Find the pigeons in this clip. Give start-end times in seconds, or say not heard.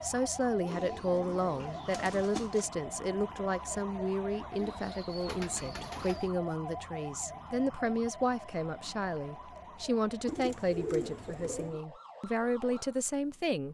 0.7-2.7, 4.5-6.3, 10.2-11.8.